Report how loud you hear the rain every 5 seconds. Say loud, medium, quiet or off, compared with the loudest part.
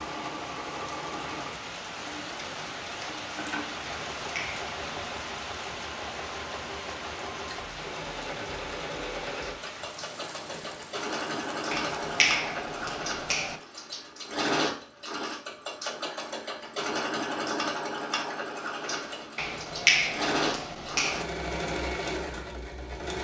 loud, loud, medium, off, off.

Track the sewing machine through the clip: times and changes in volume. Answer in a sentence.
The sewing machine can be heard from 0.0 to 23.1 s, getting louder.